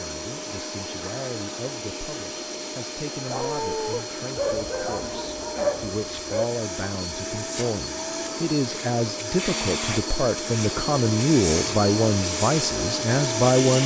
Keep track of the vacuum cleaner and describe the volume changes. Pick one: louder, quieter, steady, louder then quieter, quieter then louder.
louder.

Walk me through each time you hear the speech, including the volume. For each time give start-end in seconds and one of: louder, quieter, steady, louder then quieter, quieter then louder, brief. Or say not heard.
0.0-13.8 louder.